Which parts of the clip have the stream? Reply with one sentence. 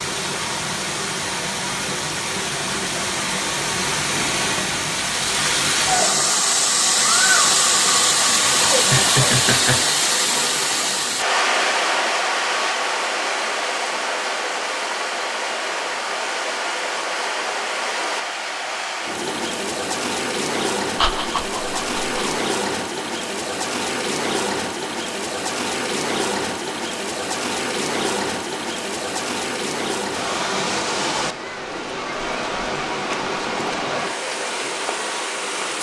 You can hear the stream from 0.0 to 35.7 s.